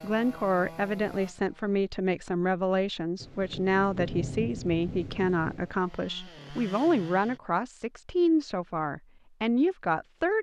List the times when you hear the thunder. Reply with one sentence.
You can hear the thunder from 3.2 to 5.7 s.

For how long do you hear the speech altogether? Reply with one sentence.
You can hear the speech for 10 seconds altogether.